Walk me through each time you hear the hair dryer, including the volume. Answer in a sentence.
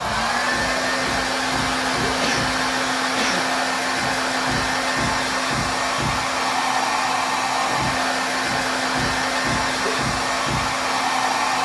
The hair dryer can be heard from 0.0 to 11.6 s, at a steady volume.